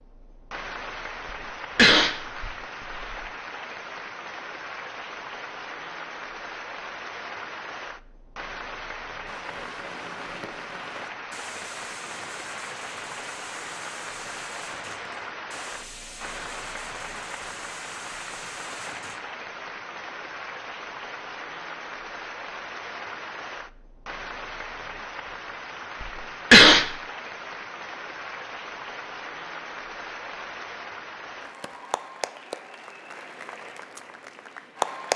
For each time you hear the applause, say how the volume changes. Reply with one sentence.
You can hear the applause from 0.0 to 35.1 s, at a steady volume.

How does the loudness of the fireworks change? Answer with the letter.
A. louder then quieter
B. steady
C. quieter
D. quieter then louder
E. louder
B.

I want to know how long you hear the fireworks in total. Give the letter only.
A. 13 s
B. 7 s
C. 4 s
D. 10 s
D.